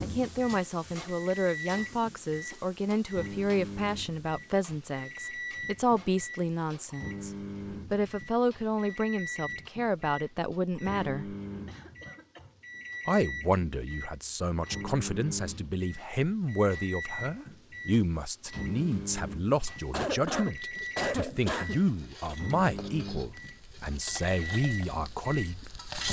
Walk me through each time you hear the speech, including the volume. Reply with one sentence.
You can hear the speech from 0.0 to 11.3 s, at a steady volume; and from 13.1 to 25.7 s, at a steady volume.